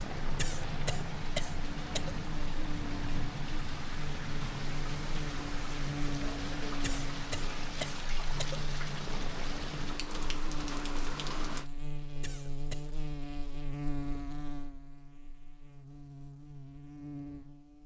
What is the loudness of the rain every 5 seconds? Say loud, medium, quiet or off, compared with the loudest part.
loud, loud, loud, off.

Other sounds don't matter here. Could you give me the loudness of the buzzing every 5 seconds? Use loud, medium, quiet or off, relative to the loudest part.
loud, loud, loud, medium.